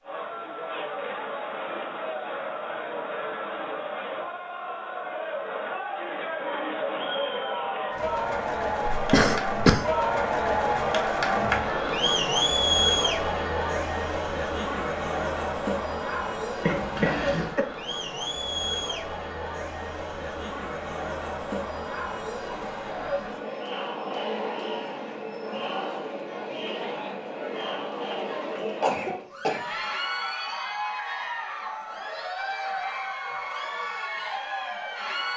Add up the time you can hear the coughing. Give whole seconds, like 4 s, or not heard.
3 s.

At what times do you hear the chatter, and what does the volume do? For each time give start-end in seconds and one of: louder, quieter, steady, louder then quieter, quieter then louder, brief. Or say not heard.
0.0-35.3 louder then quieter.